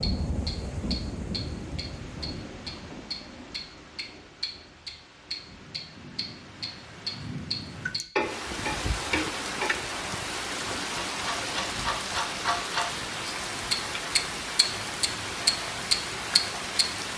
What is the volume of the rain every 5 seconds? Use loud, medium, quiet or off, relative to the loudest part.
medium, loud, loud, loud.